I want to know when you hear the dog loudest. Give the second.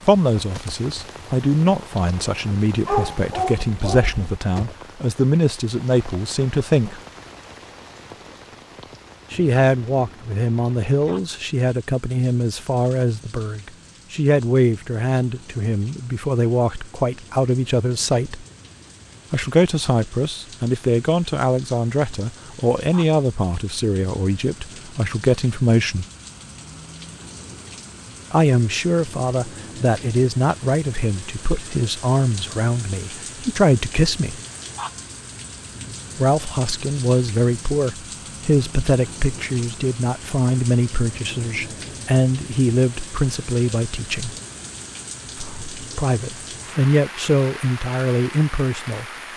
3 s.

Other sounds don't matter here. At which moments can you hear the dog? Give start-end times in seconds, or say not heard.
2.9-4.4.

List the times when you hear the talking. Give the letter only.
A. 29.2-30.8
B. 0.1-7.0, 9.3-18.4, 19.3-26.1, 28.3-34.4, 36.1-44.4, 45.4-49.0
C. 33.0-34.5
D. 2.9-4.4
B.